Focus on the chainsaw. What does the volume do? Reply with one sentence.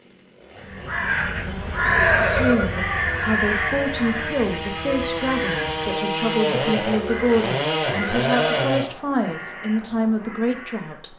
The loudness of the chainsaw goes up.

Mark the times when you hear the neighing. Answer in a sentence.
The neighing can be heard from 1.8 to 2.9 s and from 8.1 to 8.7 s.